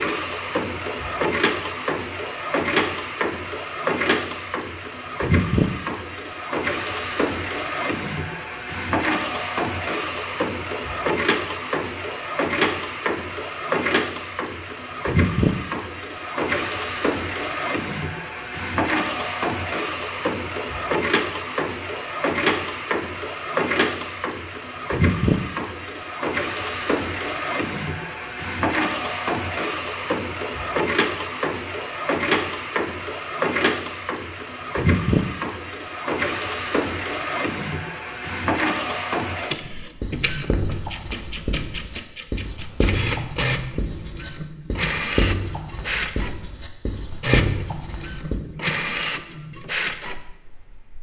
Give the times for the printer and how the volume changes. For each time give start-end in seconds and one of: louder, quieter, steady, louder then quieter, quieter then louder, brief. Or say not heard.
0.0-50.9 steady.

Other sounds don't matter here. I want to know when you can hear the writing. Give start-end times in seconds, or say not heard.
40.0-48.4.